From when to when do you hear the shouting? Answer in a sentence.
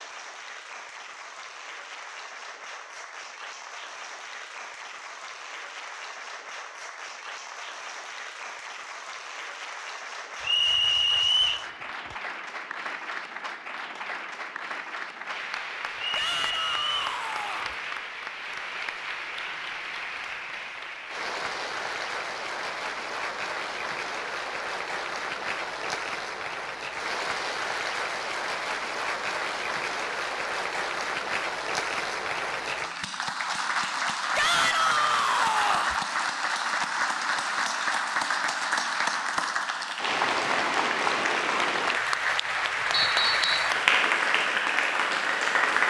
You can hear the shouting from 16.1 to 17.8 s and from 34.4 to 36.0 s.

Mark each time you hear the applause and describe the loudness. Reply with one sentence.
The applause can be heard from 0.0 to 45.8 s, getting louder.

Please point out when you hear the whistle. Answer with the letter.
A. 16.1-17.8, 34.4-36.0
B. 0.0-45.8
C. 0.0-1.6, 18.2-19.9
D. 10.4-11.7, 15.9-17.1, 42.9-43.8
D.